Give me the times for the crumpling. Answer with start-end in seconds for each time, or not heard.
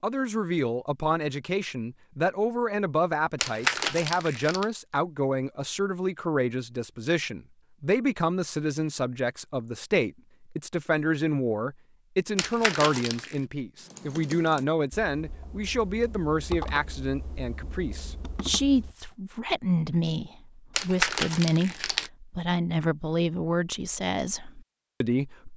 3.4-4.7, 12.3-13.3, 20.8-22.1.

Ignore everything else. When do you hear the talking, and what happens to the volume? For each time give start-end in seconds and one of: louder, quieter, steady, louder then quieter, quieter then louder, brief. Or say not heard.
0.0-25.5 steady.